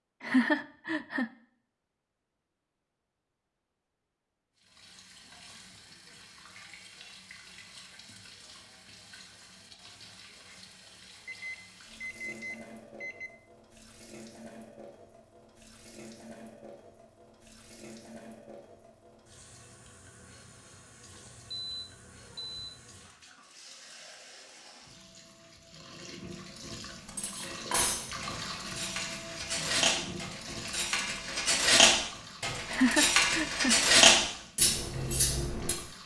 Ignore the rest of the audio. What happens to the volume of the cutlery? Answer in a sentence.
The loudness of the cutlery goes up.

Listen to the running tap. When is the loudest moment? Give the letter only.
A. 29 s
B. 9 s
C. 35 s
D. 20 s
A.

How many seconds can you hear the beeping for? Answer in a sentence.
The beeping can be heard for 4 seconds in total.